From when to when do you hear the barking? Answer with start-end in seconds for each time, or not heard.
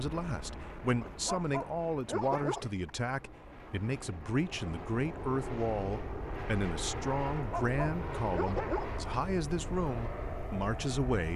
1.0-2.9, 7.3-8.9.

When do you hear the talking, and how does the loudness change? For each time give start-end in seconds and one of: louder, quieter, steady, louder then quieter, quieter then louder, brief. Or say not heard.
0.0-11.3 steady.